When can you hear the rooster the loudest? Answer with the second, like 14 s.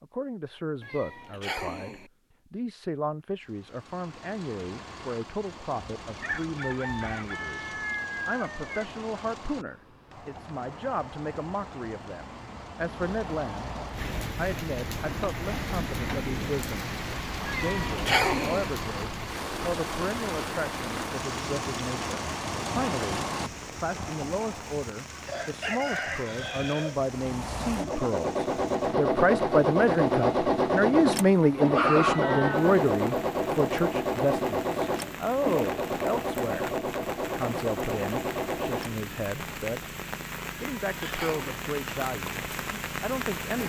32 s.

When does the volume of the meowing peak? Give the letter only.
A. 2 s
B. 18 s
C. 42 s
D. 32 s
B.